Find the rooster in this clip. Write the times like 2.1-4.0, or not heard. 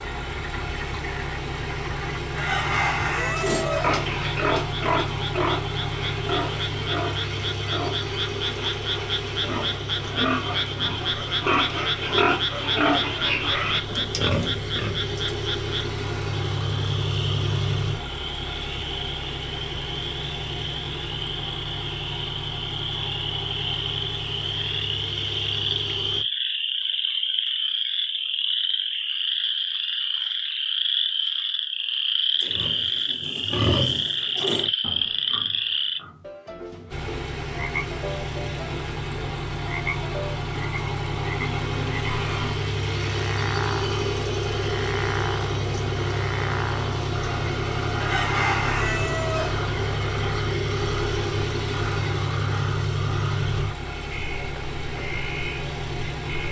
2.4-4.0, 48.0-49.6.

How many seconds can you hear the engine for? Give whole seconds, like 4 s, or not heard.
46 s.